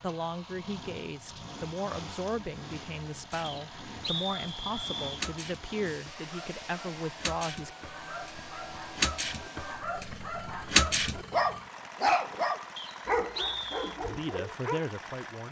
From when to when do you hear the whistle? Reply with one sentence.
The whistle can be heard from 3.4 to 5.2 s and from 12.8 to 13.9 s.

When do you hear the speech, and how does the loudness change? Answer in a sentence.
You can hear the speech from 0.0 to 7.8 s, at a steady volume; and briefly from 14.0 to 15.4 s.